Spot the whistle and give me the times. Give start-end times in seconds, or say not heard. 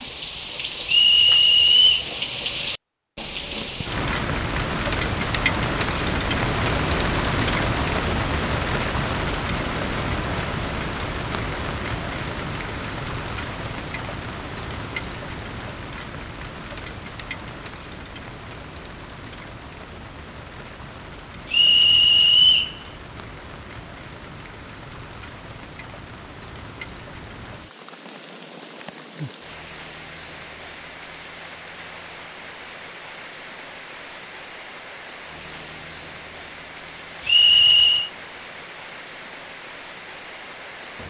0.8-2.0, 21.5-22.8, 37.2-38.1.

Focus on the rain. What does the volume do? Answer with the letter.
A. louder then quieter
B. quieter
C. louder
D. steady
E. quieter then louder
B.